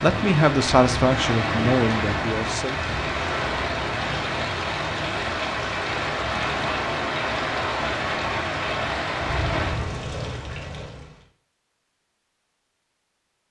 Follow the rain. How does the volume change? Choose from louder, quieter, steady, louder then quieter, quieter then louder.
steady.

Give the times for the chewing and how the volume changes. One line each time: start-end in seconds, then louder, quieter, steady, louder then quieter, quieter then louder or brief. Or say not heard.
not heard.